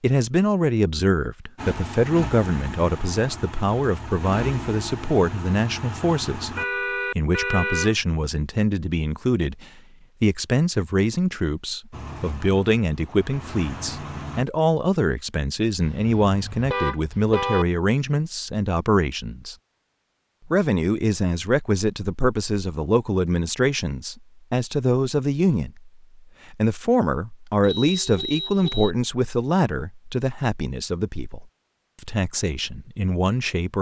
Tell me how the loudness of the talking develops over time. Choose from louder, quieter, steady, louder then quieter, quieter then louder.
steady.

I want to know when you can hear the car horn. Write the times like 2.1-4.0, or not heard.
6.5-8.0, 15.8-17.6, 27.6-28.9.